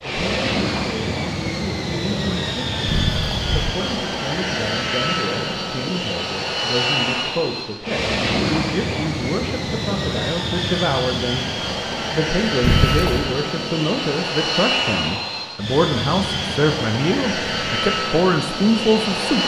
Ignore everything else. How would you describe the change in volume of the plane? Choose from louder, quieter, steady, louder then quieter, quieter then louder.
steady.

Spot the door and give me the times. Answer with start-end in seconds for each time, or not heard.
2.9-3.8, 12.6-13.3.